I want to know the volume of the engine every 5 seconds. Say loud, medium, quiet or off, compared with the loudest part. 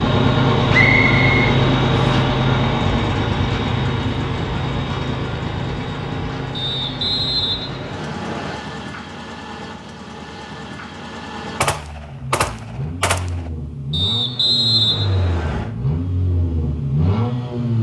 loud, medium, quiet, medium.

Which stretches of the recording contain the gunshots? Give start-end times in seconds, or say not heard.
11.6-13.5.